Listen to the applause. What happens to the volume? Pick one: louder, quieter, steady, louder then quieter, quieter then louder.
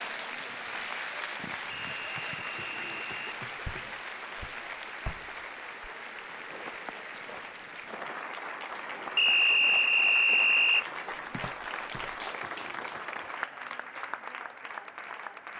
steady.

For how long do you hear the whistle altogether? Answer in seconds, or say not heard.
3 s.